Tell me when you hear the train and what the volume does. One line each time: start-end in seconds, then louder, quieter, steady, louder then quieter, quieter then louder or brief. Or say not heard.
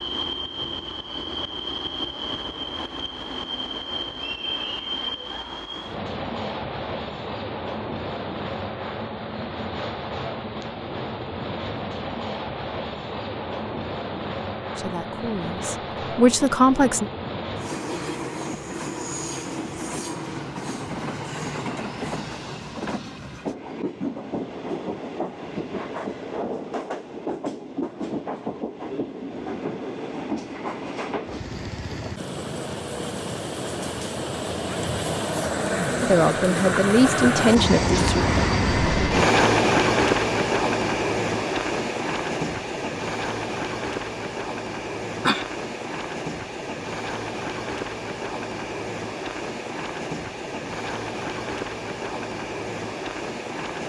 0.0-53.8 louder then quieter.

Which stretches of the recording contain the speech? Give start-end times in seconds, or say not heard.
14.8-17.1, 36.0-38.2.